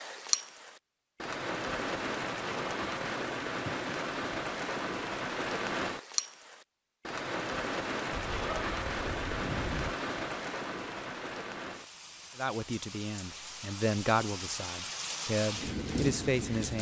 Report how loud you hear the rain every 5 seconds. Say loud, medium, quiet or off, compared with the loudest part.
loud, loud, medium, loud.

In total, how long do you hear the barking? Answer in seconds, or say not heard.
2 s.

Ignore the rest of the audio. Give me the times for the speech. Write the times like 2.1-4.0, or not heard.
12.3-16.7.